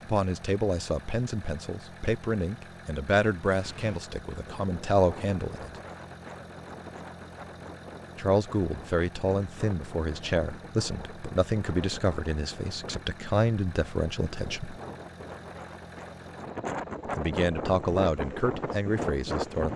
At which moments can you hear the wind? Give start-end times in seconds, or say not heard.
3.5-19.7.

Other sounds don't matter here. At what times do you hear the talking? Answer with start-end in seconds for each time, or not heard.
0.1-5.8, 8.2-14.8, 17.1-19.7.